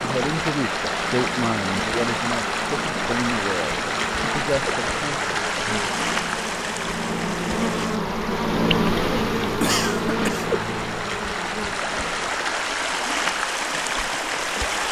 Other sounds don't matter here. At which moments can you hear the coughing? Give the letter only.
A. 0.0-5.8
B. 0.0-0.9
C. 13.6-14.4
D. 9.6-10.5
D.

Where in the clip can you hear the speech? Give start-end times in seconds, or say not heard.
0.0-5.8.